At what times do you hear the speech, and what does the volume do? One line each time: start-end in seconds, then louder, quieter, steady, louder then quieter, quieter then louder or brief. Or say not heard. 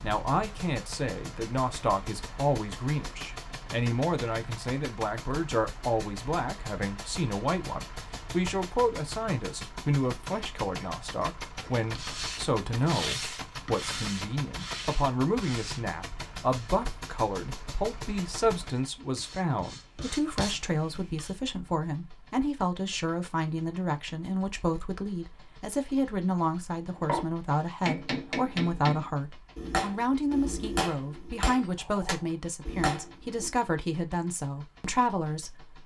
0.0-35.8 steady.